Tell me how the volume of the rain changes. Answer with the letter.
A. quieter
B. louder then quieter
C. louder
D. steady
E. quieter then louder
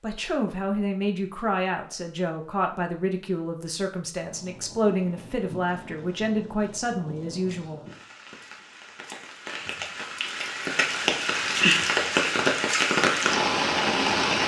C.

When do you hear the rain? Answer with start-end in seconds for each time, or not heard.
4.2-14.4.